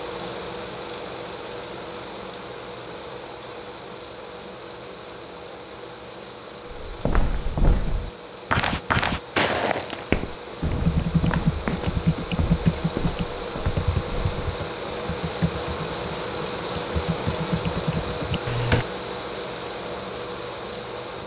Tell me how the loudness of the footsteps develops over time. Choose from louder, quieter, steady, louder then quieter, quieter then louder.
louder then quieter.